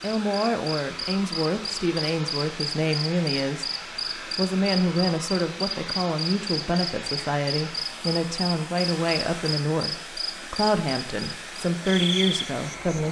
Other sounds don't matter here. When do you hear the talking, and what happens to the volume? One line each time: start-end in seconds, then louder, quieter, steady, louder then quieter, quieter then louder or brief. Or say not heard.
0.0-13.0 steady.